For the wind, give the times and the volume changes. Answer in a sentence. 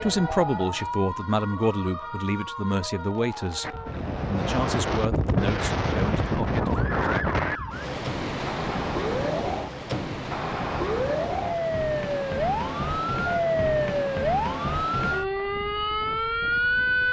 You can hear the wind from 3.6 to 17.0 s, getting quieter.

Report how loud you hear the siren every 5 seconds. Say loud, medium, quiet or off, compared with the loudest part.
medium, medium, loud, loud.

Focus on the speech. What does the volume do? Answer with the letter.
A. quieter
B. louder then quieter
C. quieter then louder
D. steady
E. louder
A.